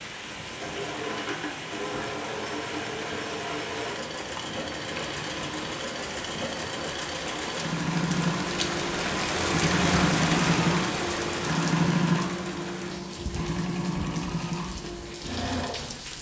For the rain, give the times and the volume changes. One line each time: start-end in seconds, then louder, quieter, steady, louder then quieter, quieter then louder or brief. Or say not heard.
0.0-16.1 louder then quieter.